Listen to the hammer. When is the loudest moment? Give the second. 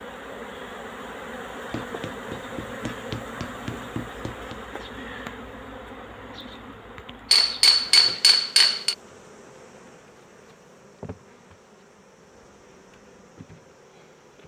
8 s.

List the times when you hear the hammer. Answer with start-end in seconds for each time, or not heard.
1.7-4.6, 7.3-8.9.